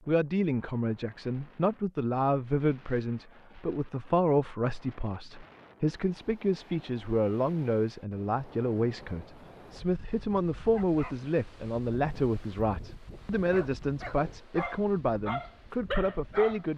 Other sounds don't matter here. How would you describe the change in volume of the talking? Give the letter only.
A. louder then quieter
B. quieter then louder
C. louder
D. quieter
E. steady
E.